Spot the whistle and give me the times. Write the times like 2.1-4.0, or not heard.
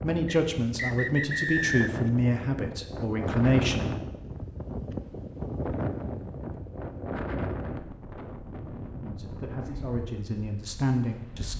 0.2-2.1.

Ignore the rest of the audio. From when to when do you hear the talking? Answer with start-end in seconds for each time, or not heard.
0.0-4.0, 9.0-11.5.